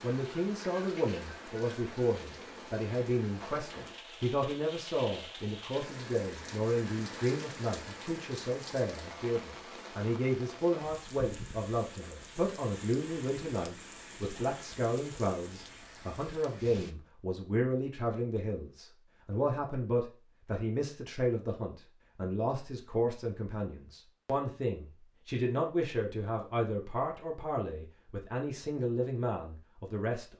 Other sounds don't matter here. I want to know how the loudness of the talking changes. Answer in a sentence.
The volume of the talking stays about the same.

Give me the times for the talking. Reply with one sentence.
The talking can be heard from 0.0 to 30.3 s.